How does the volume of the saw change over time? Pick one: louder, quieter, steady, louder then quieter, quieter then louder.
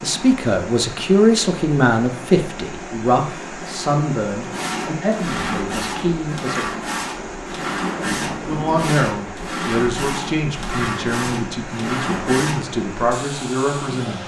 steady.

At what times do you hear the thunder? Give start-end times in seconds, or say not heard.
7.9-8.9.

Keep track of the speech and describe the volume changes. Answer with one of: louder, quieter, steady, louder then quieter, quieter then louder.
quieter.